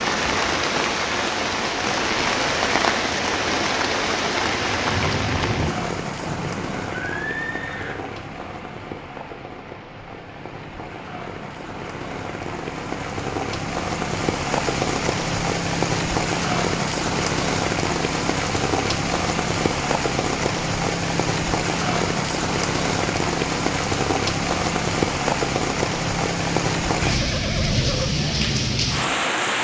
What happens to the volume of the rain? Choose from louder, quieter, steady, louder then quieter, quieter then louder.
quieter then louder.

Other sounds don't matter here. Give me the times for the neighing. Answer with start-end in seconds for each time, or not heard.
6.2-8.0, 27.0-28.1.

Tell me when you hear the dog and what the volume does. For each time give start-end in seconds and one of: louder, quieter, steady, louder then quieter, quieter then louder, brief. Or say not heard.
not heard.